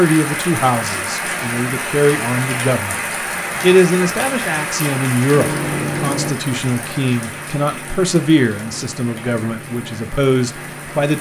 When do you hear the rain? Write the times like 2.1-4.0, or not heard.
0.0-11.1.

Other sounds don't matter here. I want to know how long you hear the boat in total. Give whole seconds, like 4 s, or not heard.
6 s.